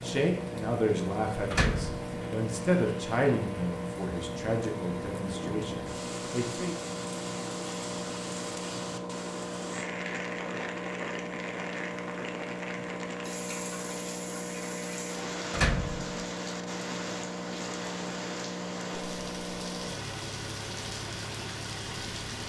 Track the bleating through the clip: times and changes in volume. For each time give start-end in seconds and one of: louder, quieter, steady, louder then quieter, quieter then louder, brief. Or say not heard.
not heard.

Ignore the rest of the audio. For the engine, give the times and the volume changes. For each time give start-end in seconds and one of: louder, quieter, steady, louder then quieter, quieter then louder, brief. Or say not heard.
0.0-22.4 steady.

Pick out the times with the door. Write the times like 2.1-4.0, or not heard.
1.5-2.0, 15.5-16.2.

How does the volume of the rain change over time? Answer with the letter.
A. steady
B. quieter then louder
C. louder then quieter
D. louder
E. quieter
A.